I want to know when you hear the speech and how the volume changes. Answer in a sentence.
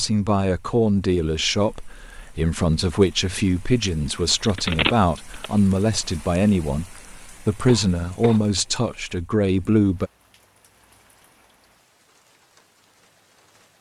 The speech can be heard from 0.0 to 10.1 s, at a steady volume.